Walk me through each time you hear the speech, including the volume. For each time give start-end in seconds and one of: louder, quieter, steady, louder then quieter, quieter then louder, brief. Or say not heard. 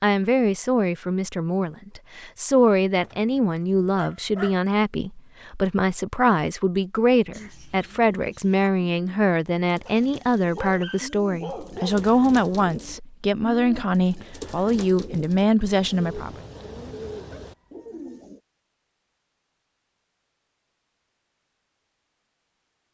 0.0-16.4 steady.